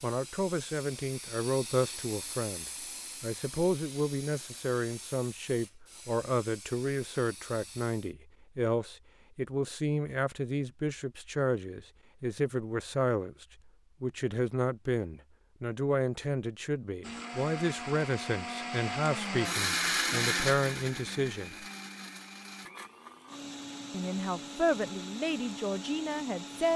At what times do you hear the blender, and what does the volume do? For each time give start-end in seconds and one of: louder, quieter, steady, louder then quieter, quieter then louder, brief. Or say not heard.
17.0-26.7 louder then quieter.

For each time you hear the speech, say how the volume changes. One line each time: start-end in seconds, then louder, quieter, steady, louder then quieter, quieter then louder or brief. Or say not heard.
0.0-21.6 steady
23.9-26.7 brief.